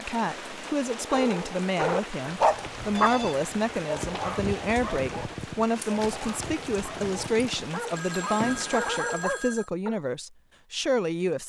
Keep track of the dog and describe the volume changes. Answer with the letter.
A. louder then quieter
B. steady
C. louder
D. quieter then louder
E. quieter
D.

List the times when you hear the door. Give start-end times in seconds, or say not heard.
not heard.